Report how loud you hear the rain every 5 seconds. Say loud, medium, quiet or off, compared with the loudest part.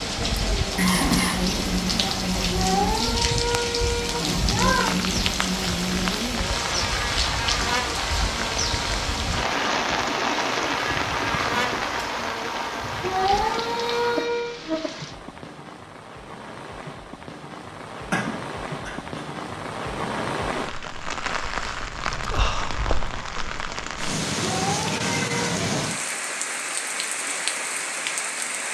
loud, loud, loud, medium, loud, loud.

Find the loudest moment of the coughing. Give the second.
1 s.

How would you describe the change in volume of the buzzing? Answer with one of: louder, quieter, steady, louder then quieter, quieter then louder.
steady.